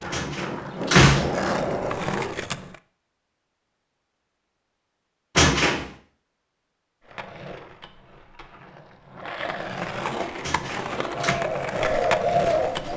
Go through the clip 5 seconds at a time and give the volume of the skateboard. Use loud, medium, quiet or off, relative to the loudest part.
loud, medium, loud.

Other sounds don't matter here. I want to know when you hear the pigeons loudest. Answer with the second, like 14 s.
12 s.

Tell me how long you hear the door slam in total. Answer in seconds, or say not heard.
3 s.